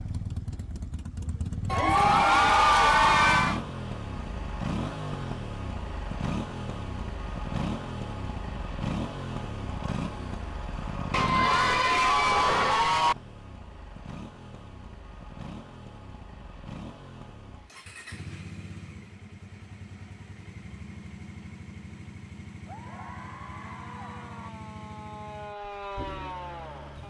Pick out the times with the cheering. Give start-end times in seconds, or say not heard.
1.7-3.6, 11.1-13.2, 22.6-24.5.